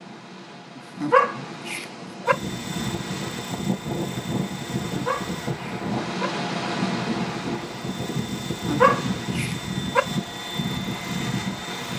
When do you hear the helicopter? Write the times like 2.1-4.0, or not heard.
2.2-11.9.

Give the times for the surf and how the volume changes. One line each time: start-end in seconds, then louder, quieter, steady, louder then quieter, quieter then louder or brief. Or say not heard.
0.0-11.9 louder then quieter.